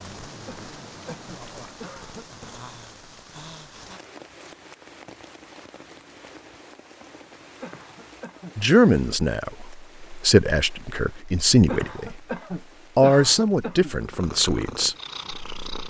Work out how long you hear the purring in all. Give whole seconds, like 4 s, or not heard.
2 s.